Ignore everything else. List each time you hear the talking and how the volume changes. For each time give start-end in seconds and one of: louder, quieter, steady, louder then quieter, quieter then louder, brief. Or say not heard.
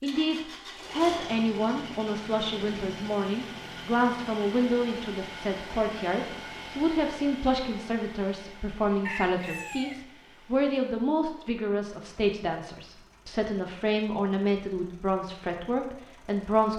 0.0-16.7 steady.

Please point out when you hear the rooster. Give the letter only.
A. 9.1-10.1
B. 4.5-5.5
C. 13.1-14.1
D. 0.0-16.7
A.